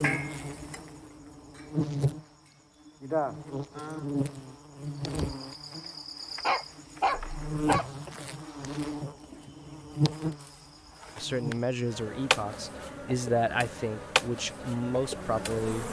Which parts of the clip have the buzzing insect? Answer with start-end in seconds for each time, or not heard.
0.0-15.8.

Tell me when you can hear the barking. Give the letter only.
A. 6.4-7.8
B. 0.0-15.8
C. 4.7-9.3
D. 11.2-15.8
A.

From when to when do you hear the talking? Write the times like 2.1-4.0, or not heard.
11.2-15.8.